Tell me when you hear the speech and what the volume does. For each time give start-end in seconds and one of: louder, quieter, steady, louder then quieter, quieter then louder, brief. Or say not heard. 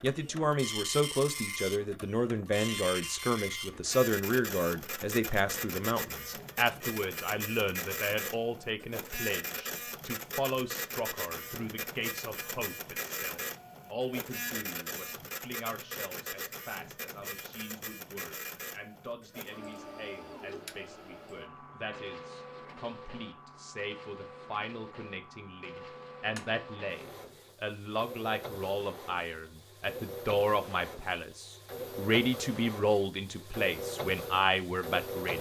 0.0-35.3 quieter then louder.